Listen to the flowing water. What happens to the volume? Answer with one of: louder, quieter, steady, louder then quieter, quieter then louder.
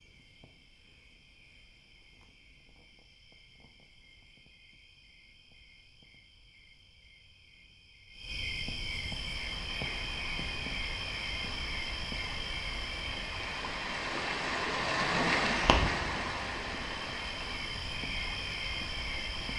louder then quieter.